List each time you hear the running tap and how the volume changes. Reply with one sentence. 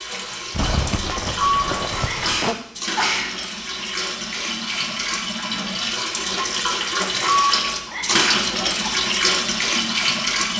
The running tap can be heard from 0.0 to 10.5 s, getting louder.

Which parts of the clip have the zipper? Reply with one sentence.
You can hear the zipper from 0.5 to 2.5 s and from 8.3 to 8.9 s.